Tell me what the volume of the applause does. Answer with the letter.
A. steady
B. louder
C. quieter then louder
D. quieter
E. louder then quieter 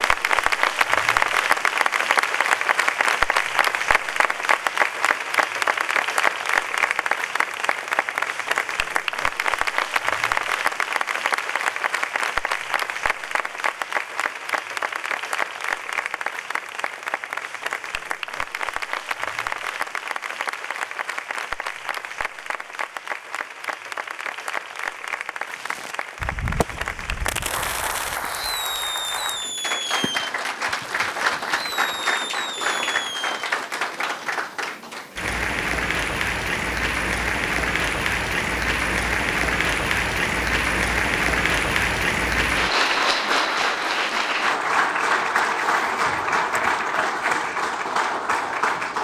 C.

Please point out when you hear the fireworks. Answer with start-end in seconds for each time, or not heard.
25.4-33.4.